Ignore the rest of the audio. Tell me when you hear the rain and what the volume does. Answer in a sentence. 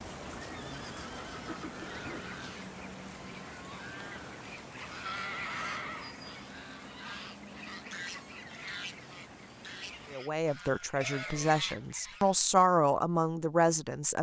You can hear the rain from 0.0 to 10.2 s, getting quieter.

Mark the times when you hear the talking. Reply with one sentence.
The talking can be heard from 10.1 to 14.1 s.